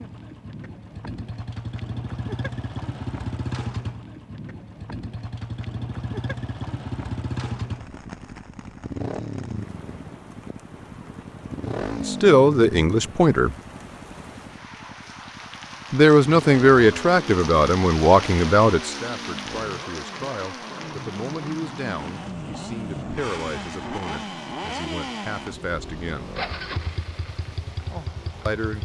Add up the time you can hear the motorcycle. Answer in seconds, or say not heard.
29 s.